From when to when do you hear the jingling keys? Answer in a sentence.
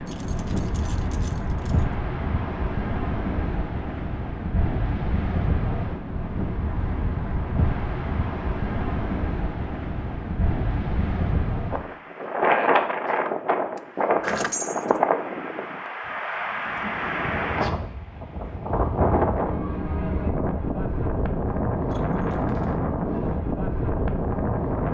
The jingling keys can be heard from 0.1 to 1.9 s, from 13.8 to 14.9 s and from 21.9 to 22.8 s.